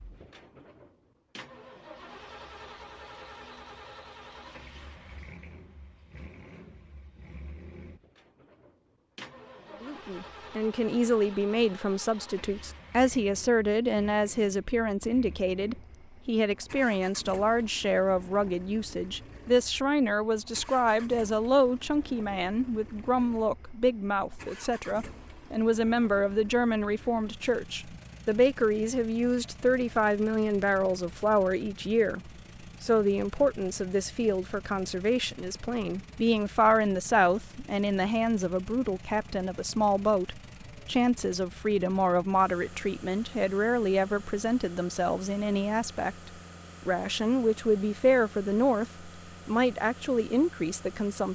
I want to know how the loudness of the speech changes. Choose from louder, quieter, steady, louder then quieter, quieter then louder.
steady.